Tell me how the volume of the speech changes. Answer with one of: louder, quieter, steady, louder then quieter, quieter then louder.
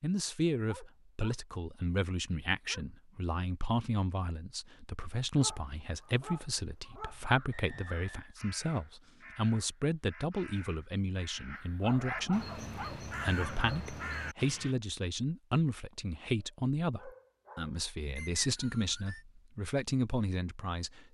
steady.